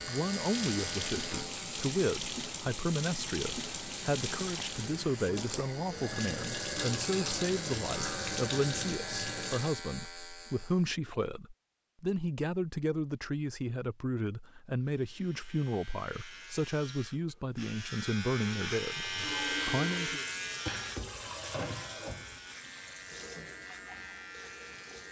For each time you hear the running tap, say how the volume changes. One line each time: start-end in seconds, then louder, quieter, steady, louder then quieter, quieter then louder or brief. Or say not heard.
0.0-9.8 steady
19.1-25.0 quieter.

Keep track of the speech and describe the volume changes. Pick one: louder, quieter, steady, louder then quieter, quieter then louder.
steady.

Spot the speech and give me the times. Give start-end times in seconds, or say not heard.
0.1-20.2.